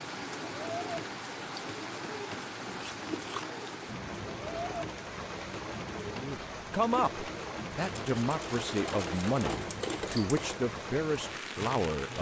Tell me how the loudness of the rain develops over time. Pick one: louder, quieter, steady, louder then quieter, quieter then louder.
steady.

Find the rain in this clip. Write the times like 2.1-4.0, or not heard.
0.0-12.1.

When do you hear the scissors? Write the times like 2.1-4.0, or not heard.
2.6-3.5.